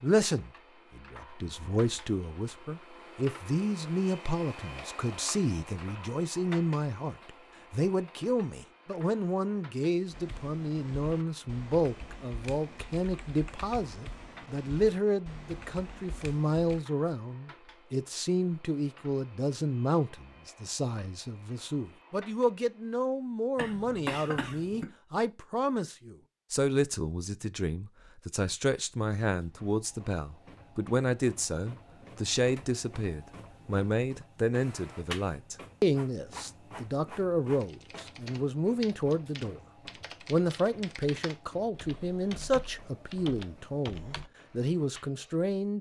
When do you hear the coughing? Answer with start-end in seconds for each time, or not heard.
23.6-24.9.